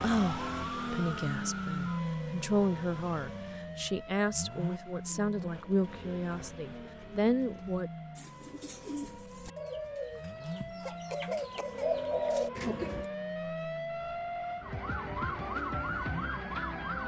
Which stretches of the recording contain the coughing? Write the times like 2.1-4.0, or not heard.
10.8-11.9.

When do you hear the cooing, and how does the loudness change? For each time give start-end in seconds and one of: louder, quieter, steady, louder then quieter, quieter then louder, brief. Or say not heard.
5.0-13.1 louder.